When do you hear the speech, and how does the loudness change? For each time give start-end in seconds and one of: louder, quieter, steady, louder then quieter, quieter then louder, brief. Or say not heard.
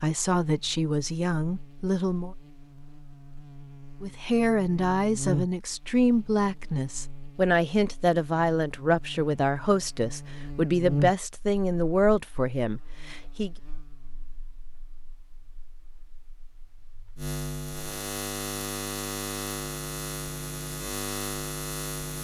0.0-2.4 brief
4.0-13.5 steady.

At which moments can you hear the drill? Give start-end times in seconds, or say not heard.
not heard.